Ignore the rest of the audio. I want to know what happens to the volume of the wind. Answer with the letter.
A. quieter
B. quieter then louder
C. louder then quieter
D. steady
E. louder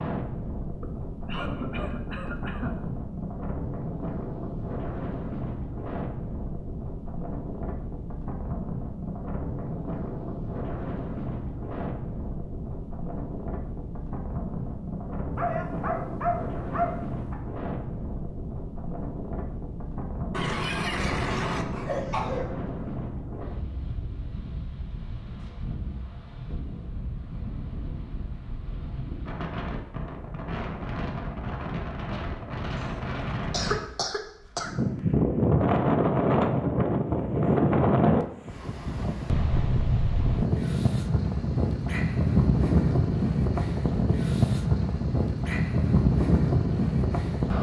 E.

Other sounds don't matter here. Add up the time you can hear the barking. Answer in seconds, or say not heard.
2 s.